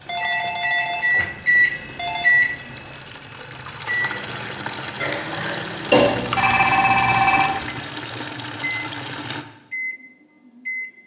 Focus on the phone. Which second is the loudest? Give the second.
7 s.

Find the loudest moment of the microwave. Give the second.
2 s.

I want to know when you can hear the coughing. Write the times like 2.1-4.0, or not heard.
5.0-6.0.